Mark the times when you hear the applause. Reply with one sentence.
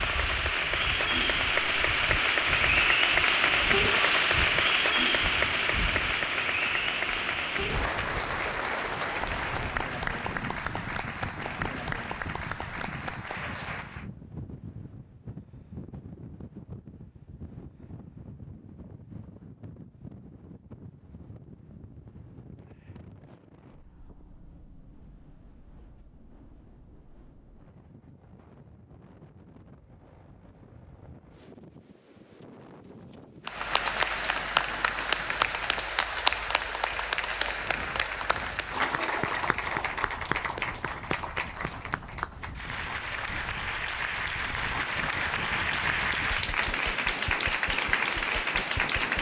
The applause can be heard from 0.0 to 14.1 s and from 33.5 to 49.1 s.